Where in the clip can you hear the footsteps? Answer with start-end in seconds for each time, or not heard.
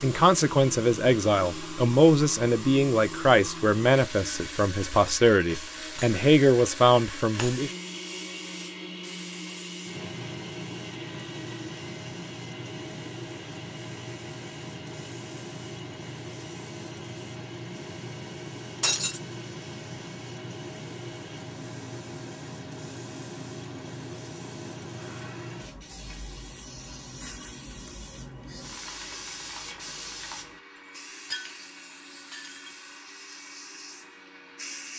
not heard.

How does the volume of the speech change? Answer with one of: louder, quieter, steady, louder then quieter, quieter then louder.
steady.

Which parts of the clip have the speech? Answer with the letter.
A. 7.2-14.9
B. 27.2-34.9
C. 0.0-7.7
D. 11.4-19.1
C.